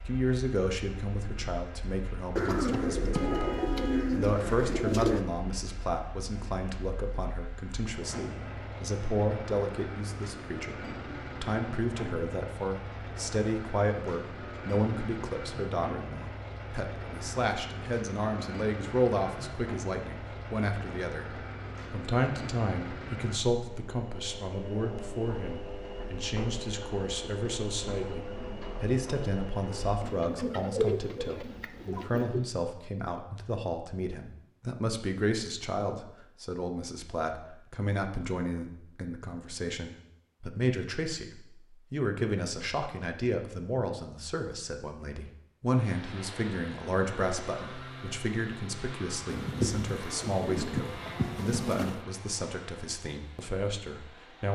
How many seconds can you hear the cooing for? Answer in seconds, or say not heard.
8 s.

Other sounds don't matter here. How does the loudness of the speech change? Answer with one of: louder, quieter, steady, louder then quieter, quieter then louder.
steady.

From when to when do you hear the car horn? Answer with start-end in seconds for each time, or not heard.
3.0-4.1.